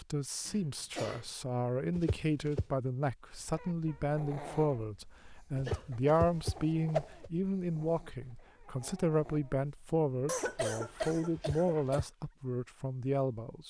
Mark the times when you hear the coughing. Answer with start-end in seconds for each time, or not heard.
0.5-1.2, 5.7-6.2, 10.2-12.1.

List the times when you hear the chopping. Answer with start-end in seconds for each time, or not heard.
not heard.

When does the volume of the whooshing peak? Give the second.
7 s.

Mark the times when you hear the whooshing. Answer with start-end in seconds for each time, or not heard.
1.9-2.6, 5.5-7.3, 11.3-12.1.